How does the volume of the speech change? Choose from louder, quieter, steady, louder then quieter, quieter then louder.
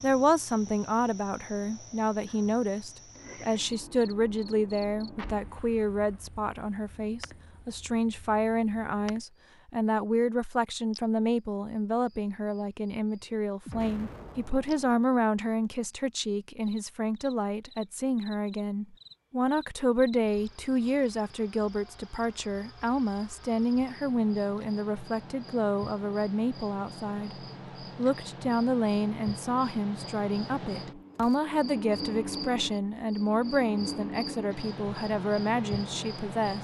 steady.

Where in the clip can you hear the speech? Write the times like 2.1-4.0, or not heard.
0.0-27.4, 27.9-36.5.